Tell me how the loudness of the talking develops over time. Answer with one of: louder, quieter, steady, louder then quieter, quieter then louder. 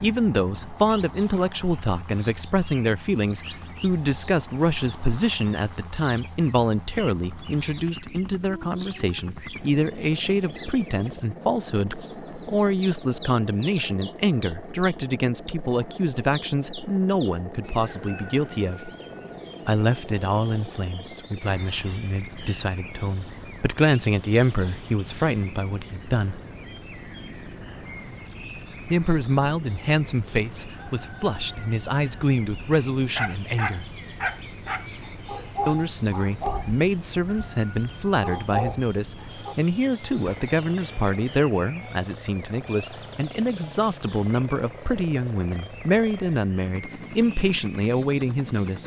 steady.